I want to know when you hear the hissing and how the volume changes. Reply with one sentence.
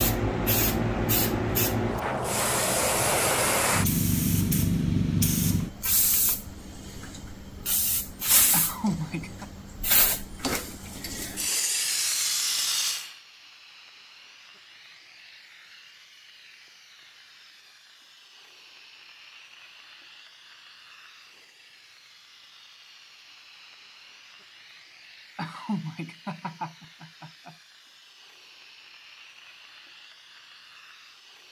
You can hear the hissing from 0.0 to 31.4 s, getting quieter.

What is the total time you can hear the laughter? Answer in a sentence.
You can hear the laughter for 3 seconds altogether.